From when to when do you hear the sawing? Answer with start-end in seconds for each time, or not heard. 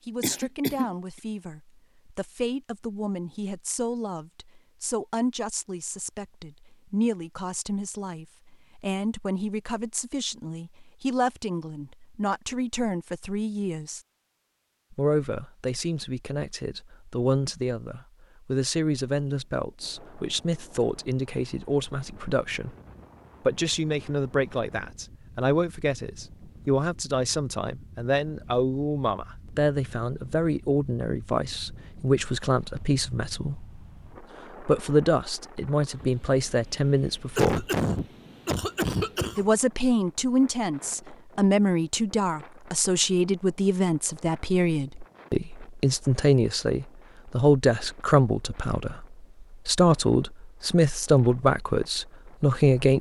not heard.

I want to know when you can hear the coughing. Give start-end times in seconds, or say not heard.
0.2-0.9, 37.4-39.5.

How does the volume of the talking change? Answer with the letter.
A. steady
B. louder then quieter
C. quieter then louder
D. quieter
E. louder
E.